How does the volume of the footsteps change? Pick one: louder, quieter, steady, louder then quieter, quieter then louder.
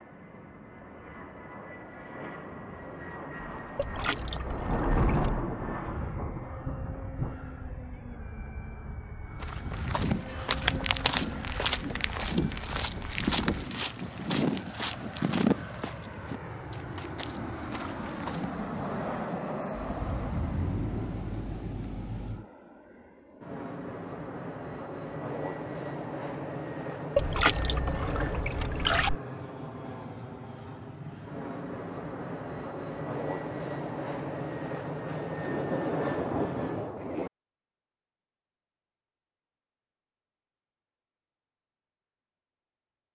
quieter.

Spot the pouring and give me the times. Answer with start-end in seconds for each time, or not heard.
3.8-5.4, 27.1-29.1.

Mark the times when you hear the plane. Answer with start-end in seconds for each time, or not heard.
0.0-37.0.